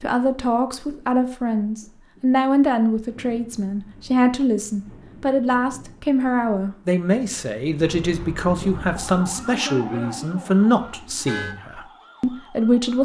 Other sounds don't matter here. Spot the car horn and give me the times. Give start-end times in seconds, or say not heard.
10.8-11.6.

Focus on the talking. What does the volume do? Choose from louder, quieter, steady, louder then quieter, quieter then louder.
steady.